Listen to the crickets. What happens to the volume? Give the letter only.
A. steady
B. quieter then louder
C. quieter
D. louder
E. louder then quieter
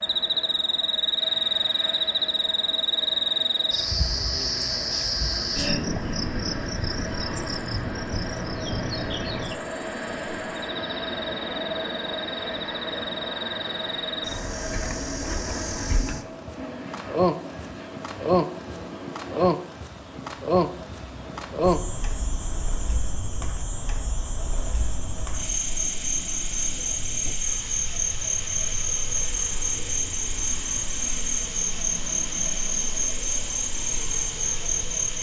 B.